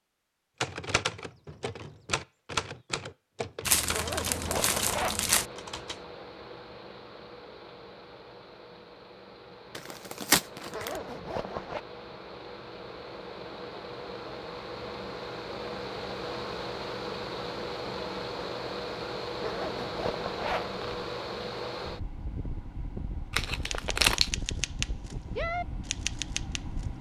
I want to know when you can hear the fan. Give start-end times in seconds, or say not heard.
4.2-26.9.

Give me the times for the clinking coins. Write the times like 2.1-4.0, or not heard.
not heard.